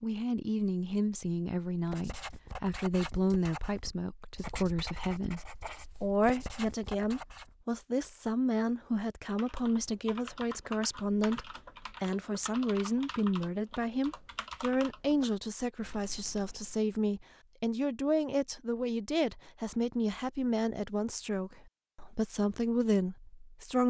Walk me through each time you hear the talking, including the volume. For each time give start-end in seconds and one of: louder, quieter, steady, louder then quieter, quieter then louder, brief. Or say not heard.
0.0-23.8 steady.